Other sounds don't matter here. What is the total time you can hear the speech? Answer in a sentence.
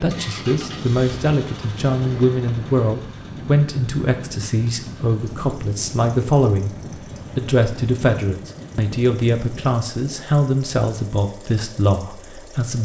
You can hear the speech for 12 seconds altogether.